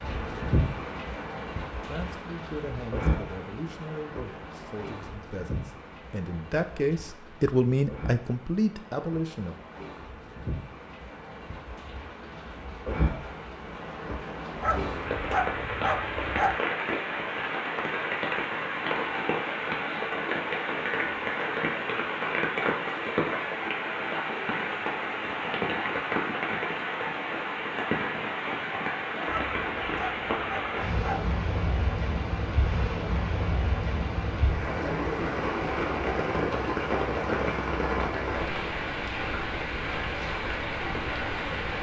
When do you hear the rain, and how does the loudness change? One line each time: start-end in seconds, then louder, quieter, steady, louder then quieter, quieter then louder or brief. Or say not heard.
0.0-41.7 louder.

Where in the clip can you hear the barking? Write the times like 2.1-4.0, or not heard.
14.6-16.6, 29.2-31.4.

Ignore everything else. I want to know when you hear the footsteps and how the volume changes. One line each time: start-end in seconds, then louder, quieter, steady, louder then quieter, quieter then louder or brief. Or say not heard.
not heard.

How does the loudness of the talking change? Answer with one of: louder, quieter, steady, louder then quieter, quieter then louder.
louder.